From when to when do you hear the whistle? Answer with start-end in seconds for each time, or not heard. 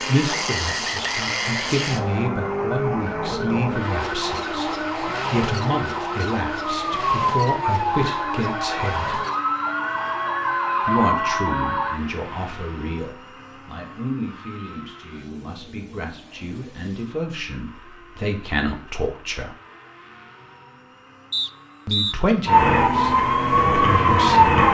0.2-2.3, 21.3-22.1.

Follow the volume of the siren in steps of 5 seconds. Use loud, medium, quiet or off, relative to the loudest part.
quiet, medium, medium, off, loud.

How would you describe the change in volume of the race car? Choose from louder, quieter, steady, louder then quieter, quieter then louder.
quieter.